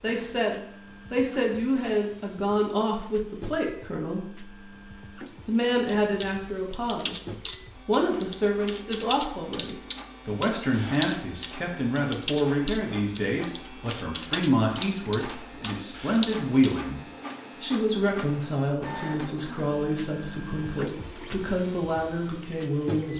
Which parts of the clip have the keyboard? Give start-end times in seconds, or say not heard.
5.8-16.9.